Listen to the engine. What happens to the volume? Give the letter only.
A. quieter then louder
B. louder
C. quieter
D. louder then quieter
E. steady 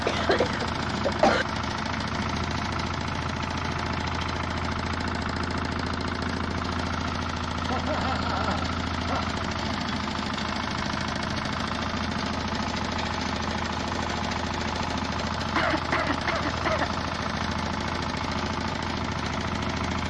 E.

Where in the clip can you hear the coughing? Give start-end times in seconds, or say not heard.
0.1-1.4, 7.7-9.3, 15.6-16.9.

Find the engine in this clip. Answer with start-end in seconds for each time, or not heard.
0.0-20.0.